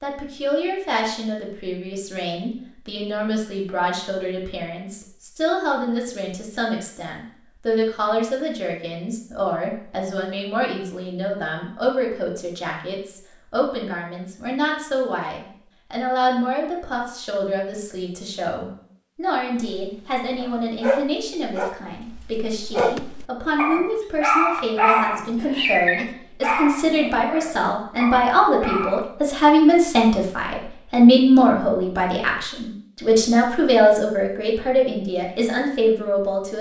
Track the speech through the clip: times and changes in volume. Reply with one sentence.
The speech can be heard from 0.0 to 36.5 s, getting louder.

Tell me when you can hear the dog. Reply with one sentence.
The dog can be heard from 19.6 to 29.1 s.